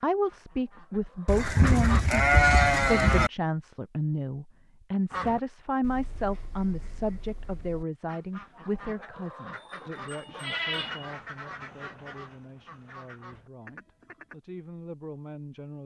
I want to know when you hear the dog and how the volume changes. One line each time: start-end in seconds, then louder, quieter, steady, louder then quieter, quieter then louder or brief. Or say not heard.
not heard.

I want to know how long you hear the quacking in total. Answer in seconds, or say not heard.
11 s.